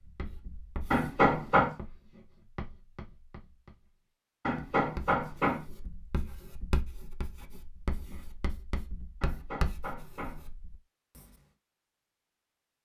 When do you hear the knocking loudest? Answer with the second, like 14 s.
1 s.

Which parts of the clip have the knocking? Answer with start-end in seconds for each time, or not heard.
0.9-1.8, 4.5-5.7, 9.2-10.5.